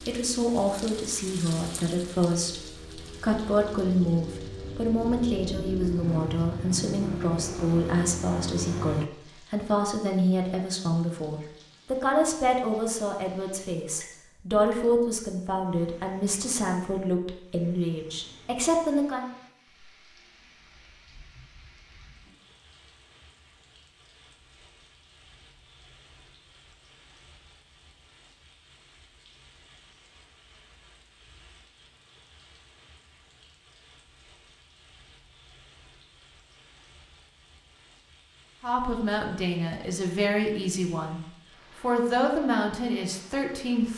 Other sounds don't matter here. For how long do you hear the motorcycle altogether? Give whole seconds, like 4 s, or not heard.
9 s.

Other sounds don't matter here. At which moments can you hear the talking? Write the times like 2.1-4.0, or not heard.
0.1-19.2, 38.6-43.9.